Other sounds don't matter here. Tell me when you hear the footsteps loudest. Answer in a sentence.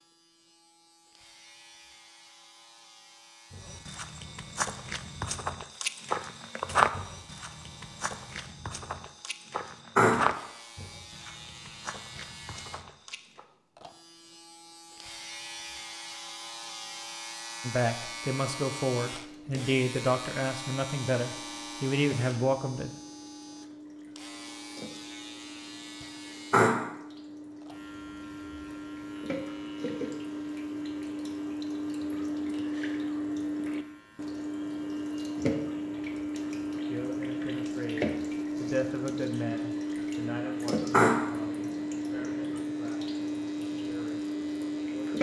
The volume of the footsteps peaks at 7 seconds.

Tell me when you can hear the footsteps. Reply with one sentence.
You can hear the footsteps from 3.5 to 13.4 s.